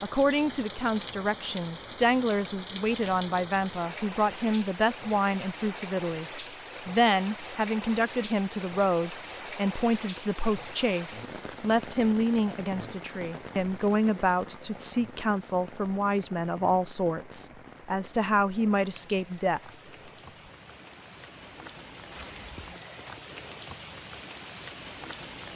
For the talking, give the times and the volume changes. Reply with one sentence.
The talking can be heard from 0.0 to 19.8 s, at a steady volume.